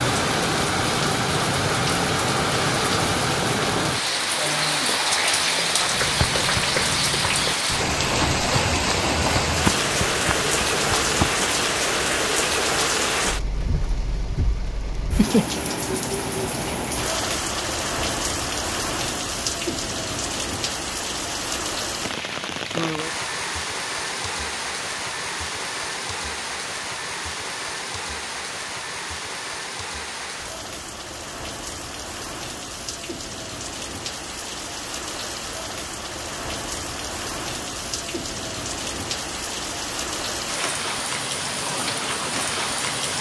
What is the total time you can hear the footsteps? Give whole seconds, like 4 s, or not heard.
6 s.